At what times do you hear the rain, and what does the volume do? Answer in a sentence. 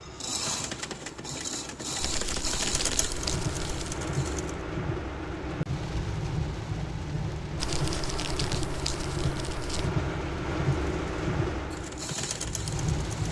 You can hear the rain from 0.0 to 13.2 s, getting louder.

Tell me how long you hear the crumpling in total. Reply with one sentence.
The crumpling can be heard for 4 seconds in total.